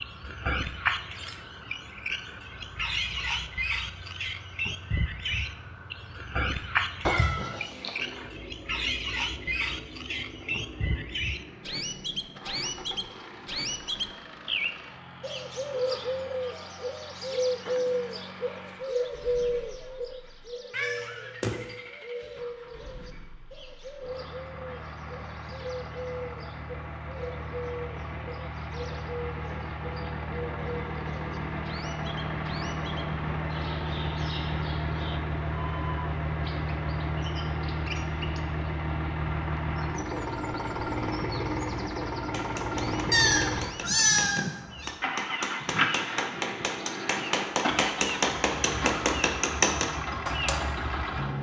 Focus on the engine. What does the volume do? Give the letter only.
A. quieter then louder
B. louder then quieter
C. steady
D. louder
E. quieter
D.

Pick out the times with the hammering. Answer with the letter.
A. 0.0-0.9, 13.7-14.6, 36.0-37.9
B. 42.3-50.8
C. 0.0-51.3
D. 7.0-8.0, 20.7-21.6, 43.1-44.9
B.